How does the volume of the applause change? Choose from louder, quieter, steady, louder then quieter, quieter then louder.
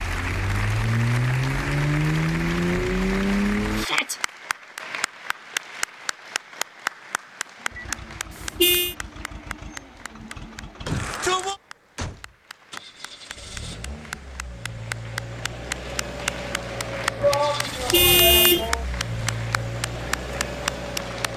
quieter then louder.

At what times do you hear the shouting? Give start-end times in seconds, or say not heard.
3.8-4.2, 10.8-11.6, 17.2-18.9.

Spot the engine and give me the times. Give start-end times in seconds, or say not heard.
0.0-3.9, 7.5-21.3.